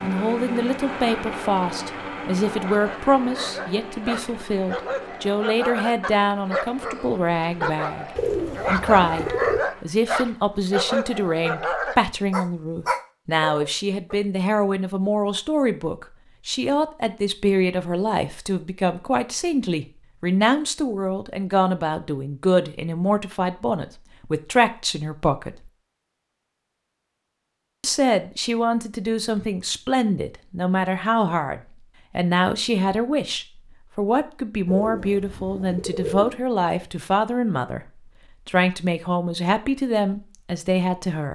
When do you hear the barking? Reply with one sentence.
You can hear the barking from 2.5 to 14.2 s.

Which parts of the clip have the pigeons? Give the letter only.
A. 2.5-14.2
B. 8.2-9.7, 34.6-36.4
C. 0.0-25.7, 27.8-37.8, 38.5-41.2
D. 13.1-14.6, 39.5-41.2
B.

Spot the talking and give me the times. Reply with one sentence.
You can hear the talking from 0.0 to 25.7 s, from 27.8 to 37.8 s and from 38.5 to 41.2 s.